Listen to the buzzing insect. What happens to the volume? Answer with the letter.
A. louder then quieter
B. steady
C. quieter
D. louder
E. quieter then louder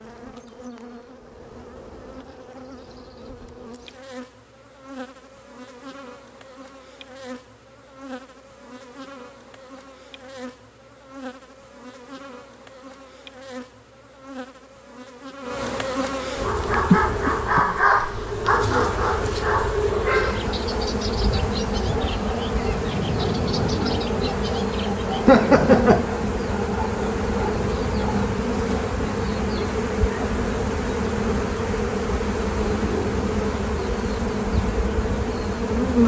D.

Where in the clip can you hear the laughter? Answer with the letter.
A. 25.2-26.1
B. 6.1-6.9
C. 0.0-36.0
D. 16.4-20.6
A.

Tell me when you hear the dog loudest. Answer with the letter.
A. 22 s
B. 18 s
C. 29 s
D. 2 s
B.